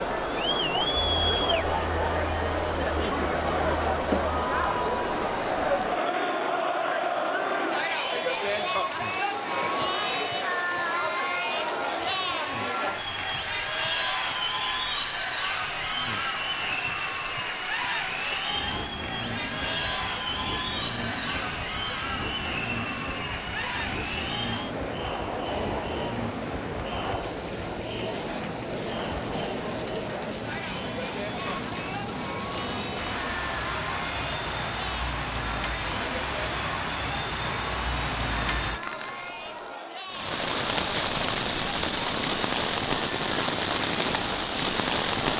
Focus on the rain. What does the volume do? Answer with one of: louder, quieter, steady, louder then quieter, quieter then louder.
louder.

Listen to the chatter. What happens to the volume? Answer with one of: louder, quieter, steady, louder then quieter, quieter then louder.
quieter.